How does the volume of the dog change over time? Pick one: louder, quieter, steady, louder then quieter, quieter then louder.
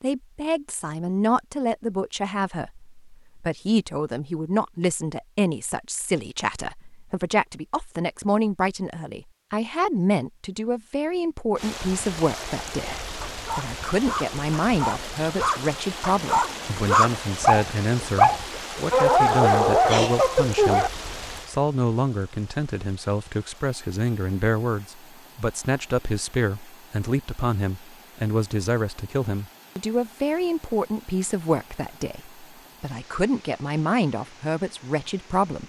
louder.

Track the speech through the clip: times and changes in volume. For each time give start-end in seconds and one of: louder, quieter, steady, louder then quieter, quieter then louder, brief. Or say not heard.
0.0-35.6 steady.